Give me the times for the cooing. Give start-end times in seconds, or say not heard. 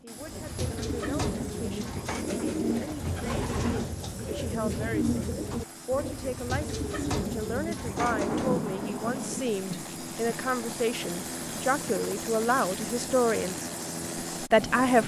0.1-8.7.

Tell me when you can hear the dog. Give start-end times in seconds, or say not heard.
not heard.